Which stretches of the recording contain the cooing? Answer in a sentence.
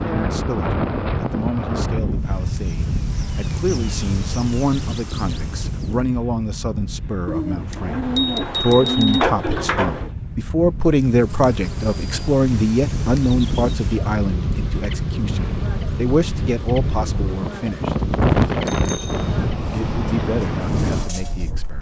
You can hear the cooing from 7.2 to 10.1 s.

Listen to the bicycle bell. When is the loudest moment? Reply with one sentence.
The loudest moment of the bicycle bell is at 18 seconds.